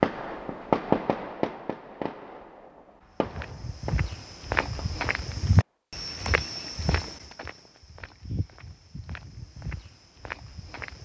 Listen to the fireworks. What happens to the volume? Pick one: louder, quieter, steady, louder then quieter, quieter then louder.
quieter.